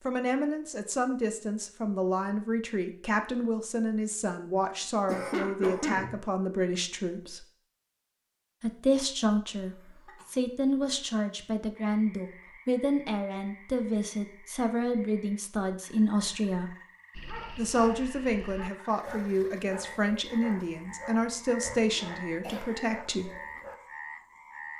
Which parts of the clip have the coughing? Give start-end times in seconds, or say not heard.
5.0-6.2, 9.6-10.9, 21.6-22.9.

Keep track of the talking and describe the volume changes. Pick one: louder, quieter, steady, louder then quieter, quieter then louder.
steady.